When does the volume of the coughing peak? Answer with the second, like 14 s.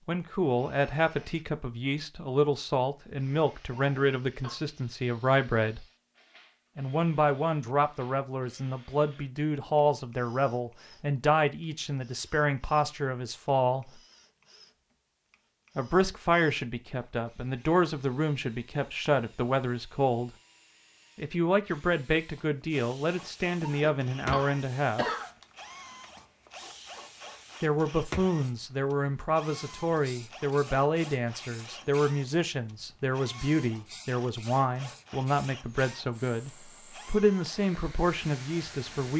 25 s.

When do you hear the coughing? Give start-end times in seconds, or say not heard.
3.7-4.6, 23.6-25.3.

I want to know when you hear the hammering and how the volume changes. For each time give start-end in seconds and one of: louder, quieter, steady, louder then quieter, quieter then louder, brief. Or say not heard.
not heard.